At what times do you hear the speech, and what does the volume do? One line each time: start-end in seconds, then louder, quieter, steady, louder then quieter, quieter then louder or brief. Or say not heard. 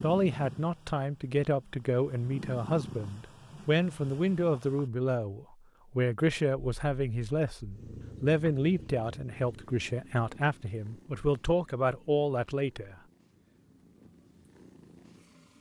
0.0-12.9 steady.